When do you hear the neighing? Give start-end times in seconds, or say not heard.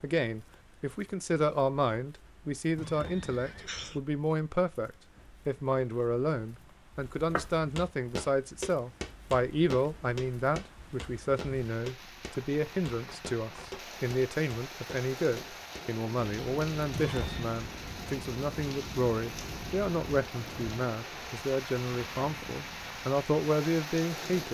2.8-4.0, 16.9-17.6.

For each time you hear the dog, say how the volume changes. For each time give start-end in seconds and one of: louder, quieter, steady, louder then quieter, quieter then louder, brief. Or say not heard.
not heard.